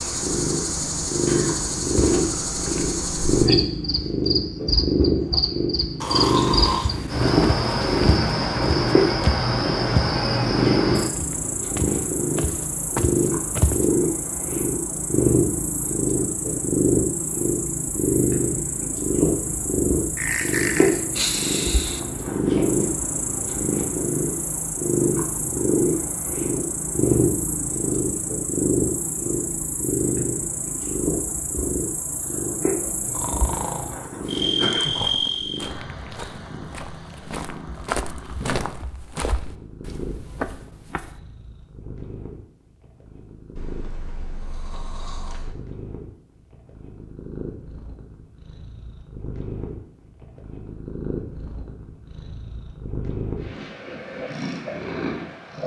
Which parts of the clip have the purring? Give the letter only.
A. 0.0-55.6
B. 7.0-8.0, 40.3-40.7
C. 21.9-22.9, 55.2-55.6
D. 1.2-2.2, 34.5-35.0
A.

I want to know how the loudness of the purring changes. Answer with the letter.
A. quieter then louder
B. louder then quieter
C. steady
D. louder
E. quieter
E.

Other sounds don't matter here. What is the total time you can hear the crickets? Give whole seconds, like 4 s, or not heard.
36 s.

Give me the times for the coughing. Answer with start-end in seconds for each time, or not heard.
1.2-2.2, 34.5-35.0.